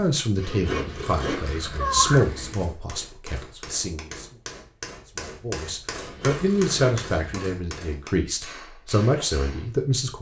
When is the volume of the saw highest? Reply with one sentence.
The loudest moment of the saw is at 2 seconds.